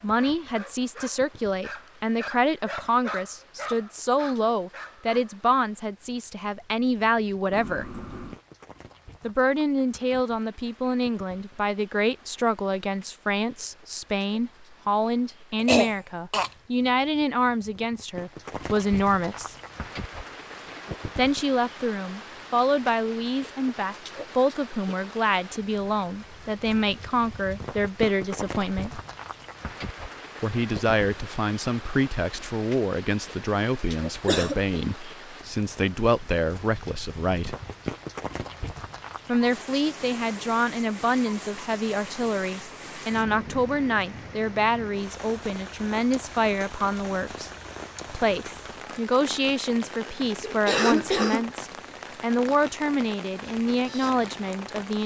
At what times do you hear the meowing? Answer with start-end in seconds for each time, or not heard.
7.5-8.4.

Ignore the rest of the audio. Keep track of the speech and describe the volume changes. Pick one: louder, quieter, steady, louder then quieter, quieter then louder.
steady.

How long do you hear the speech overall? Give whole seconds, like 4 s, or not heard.
48 s.